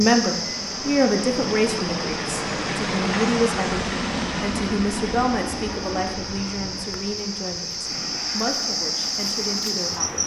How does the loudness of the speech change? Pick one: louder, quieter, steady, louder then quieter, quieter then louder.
quieter.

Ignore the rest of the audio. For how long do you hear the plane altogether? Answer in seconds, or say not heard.
10 s.